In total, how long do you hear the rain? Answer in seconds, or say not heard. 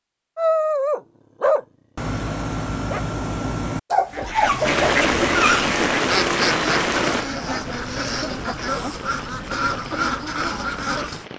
7 s.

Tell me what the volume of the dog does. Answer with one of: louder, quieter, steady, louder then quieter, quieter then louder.
quieter then louder.